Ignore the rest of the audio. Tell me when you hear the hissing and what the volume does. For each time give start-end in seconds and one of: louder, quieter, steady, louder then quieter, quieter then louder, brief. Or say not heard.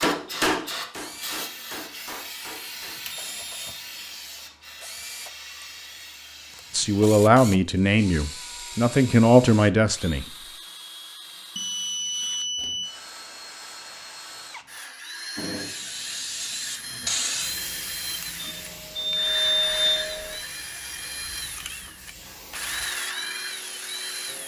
0.0-7.2 quieter
15.3-24.4 quieter.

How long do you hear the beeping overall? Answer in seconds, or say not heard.
4 s.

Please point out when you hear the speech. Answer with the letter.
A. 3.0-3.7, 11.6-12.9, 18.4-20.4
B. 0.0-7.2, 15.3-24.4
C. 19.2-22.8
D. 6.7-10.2
D.